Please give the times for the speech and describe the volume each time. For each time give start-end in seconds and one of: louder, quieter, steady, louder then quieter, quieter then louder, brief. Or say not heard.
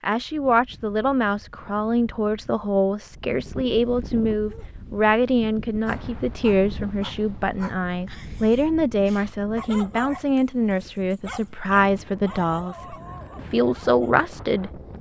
0.0-14.8 steady.